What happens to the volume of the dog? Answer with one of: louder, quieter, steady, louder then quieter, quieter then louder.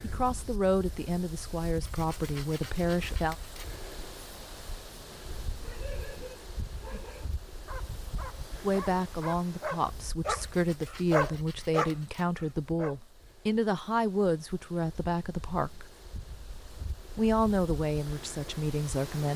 louder.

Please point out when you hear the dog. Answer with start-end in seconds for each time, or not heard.
5.1-12.9.